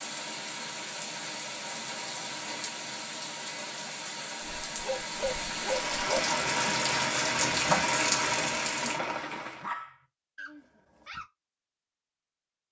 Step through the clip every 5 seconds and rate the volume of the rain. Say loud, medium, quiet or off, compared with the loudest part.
medium, loud, off.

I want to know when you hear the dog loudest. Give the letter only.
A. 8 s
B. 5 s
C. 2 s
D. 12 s
A.